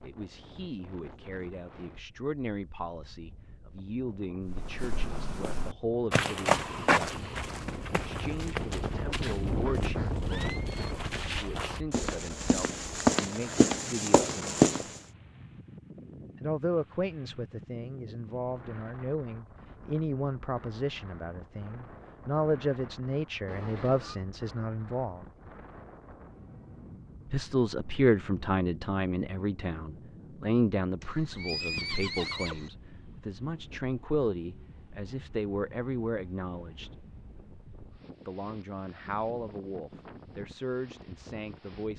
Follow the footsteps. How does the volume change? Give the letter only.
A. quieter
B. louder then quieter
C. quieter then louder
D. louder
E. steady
C.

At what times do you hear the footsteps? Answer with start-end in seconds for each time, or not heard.
4.5-14.9.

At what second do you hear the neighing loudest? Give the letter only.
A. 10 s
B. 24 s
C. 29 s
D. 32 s
D.